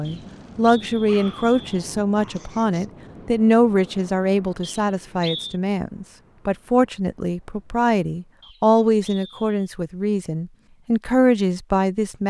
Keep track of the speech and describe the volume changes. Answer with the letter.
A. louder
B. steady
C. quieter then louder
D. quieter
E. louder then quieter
B.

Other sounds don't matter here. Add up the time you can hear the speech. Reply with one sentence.
The speech can be heard for 12 seconds in total.